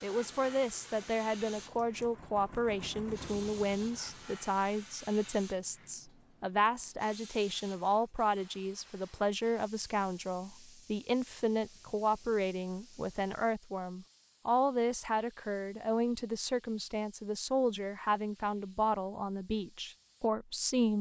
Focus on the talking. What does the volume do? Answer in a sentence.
The volume of the talking stays about the same.